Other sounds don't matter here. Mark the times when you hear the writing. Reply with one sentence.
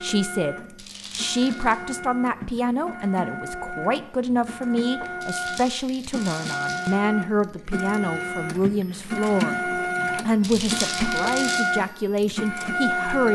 The writing can't be heard in this clip.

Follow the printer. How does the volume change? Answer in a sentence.
The loudness of the printer goes up.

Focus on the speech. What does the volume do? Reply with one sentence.
The volume of the speech stays about the same.